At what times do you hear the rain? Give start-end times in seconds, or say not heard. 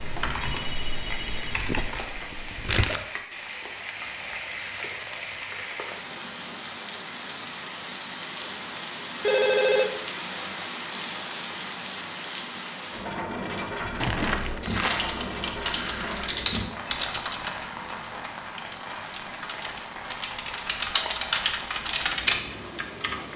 0.0-23.3.